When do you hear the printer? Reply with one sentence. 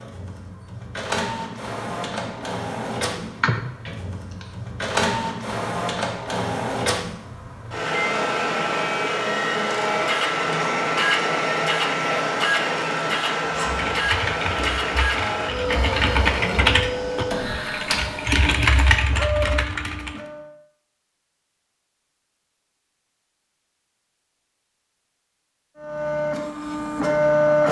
The printer can be heard from 0.0 to 20.5 s and from 25.8 to 27.6 s.